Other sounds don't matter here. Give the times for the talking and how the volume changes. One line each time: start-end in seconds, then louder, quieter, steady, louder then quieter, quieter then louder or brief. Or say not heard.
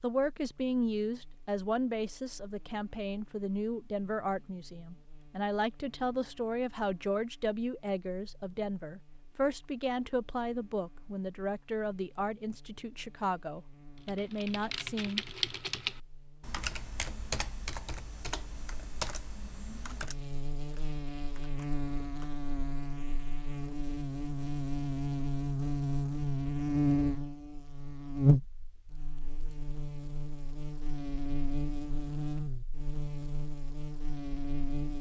0.0-15.2 steady.